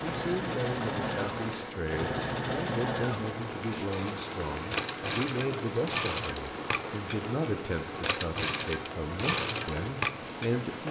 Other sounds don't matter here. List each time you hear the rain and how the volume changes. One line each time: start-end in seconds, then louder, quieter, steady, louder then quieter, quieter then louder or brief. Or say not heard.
0.0-10.8 steady.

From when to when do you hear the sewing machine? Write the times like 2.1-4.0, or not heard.
0.0-10.8.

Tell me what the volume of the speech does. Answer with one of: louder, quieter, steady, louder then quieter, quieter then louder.
steady.